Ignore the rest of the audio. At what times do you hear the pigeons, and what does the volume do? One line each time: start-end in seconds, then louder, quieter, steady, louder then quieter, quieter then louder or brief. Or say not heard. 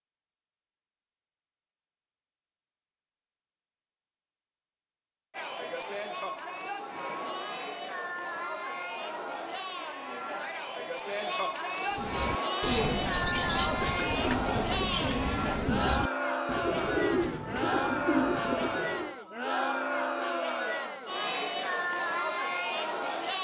11.9-19.1 steady.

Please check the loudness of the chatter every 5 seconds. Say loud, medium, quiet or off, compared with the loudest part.
off, medium, loud, loud, loud.